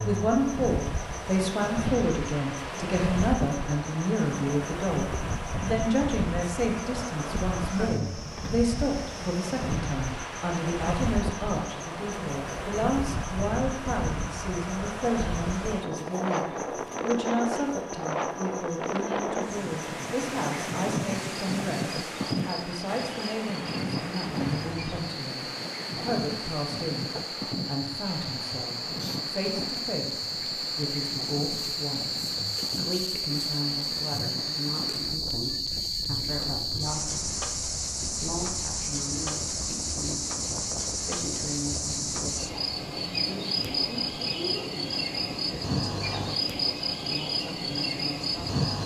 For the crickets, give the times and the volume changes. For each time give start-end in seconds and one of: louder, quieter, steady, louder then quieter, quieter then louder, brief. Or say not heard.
0.0-48.8 louder.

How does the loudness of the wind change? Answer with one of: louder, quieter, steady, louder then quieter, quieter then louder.
quieter.